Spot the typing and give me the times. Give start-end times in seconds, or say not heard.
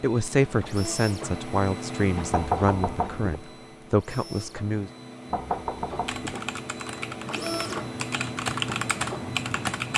6.0-9.9.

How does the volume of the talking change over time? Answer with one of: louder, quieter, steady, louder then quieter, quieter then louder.
quieter then louder.